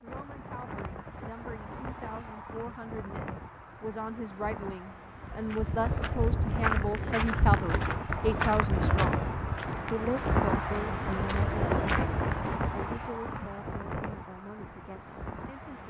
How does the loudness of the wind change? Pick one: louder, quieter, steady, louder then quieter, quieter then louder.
louder then quieter.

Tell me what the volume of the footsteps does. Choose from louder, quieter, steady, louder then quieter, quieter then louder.
quieter then louder.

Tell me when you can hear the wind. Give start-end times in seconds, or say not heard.
0.0-15.8.